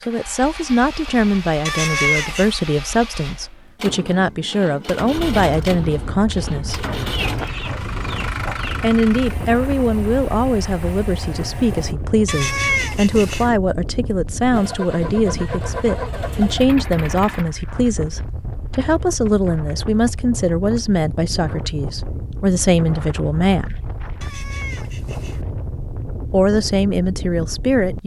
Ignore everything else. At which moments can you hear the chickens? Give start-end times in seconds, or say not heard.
6.8-8.8.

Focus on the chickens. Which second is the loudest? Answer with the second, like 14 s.
7 s.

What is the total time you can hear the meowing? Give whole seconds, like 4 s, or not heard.
3 s.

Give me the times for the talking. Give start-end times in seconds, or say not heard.
0.1-6.8, 8.8-23.8, 26.3-28.0.